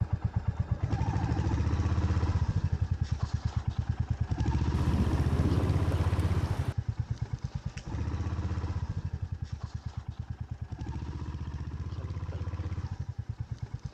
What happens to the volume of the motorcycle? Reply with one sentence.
The loudness of the motorcycle goes down.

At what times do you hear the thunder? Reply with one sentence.
The thunder can be heard from 4.7 to 6.8 s.